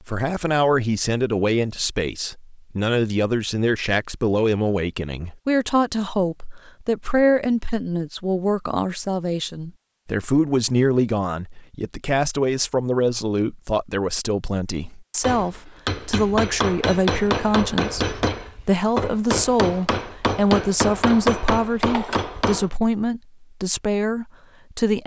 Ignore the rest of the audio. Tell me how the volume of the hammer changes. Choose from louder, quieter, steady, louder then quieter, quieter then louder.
steady.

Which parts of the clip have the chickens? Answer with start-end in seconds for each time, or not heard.
not heard.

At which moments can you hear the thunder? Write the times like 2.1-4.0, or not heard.
not heard.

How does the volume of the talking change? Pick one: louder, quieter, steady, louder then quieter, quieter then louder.
steady.